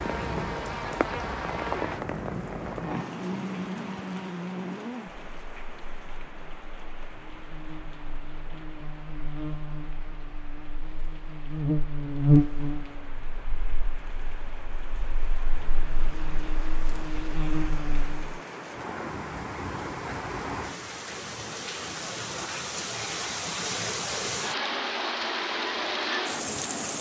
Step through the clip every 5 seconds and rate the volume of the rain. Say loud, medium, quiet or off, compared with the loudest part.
medium, quiet, quiet, medium, loud, loud.